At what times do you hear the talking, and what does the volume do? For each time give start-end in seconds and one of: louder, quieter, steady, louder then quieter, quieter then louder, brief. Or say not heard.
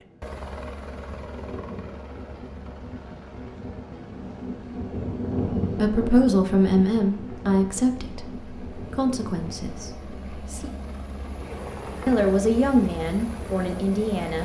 5.8-10.7 quieter
12.1-14.4 brief.